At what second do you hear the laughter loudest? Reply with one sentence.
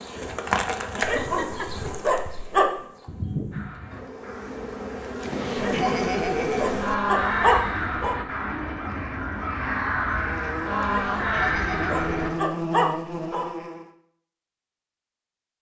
The loudest moment of the laughter is at 6 seconds.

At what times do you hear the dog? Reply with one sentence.
You can hear the dog from 1.0 to 2.7 s, from 5.5 to 8.2 s and from 10.8 to 13.4 s.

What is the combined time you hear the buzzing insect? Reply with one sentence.
You can hear the buzzing insect for 12 seconds altogether.